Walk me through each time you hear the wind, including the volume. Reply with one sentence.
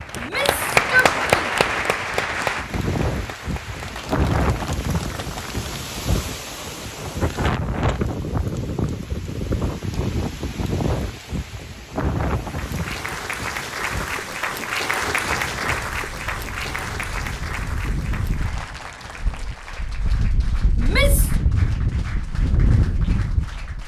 The wind can be heard from 0.0 to 23.8 s, getting quieter then louder.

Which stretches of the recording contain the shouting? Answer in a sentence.
The shouting can be heard from 0.1 to 1.4 s and from 20.8 to 21.4 s.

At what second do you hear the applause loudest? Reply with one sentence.
The loudest moment of the applause is at 1 second.